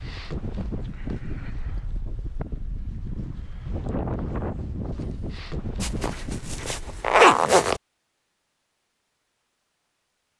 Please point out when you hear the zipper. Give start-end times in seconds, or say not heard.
5.8-7.8.